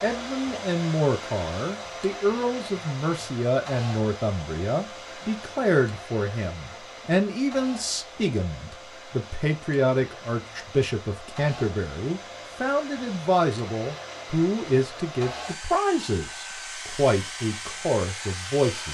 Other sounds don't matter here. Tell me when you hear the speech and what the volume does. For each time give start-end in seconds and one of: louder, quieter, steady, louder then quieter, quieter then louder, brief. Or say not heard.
0.0-18.8 steady.